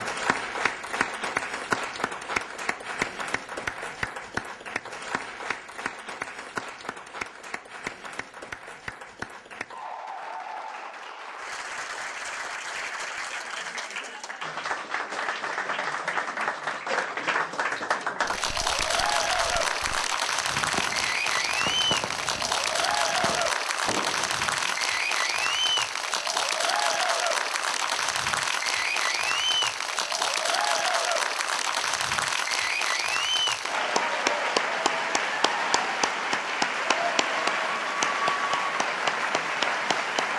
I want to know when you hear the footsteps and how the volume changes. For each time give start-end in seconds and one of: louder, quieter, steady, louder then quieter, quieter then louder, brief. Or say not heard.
not heard.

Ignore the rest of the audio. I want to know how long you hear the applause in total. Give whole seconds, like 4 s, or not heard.
40 s.